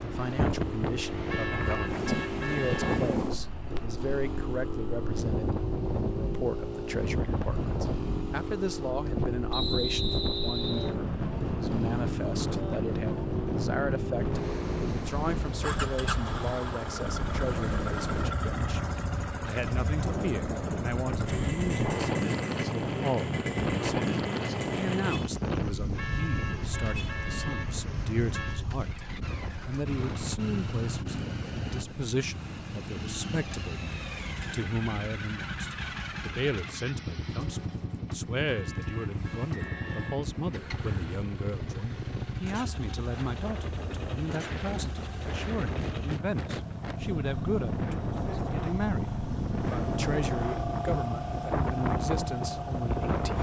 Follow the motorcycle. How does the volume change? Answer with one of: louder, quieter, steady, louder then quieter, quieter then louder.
steady.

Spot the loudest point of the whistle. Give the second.
10 s.